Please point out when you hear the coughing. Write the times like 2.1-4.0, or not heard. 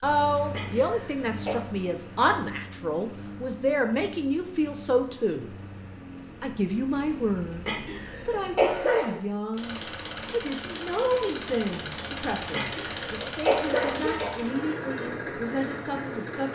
0.5-1.6, 7.7-9.2, 12.5-14.4.